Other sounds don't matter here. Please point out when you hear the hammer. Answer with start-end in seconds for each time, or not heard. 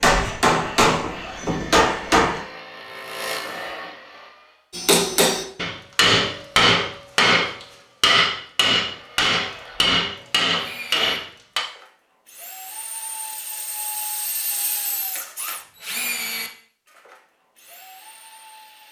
0.0-2.4, 4.7-11.6.